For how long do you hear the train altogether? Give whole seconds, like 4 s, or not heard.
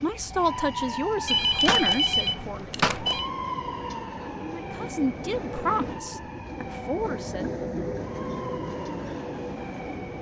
7 s.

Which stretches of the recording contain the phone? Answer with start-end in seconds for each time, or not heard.
1.2-3.3.